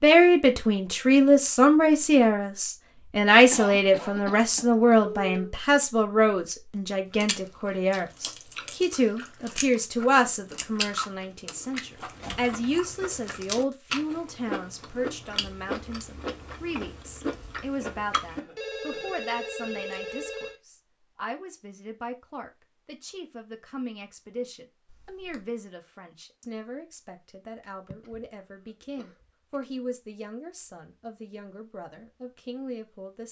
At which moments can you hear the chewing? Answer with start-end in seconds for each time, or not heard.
7.2-18.4.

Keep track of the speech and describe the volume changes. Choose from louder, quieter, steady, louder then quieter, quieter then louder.
quieter.